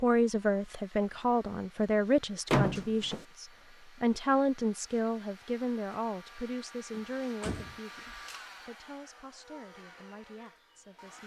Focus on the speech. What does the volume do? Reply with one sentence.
The loudness of the speech goes down.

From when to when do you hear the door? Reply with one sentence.
You can hear the door from 2.5 to 3.2 s and from 7.0 to 7.8 s.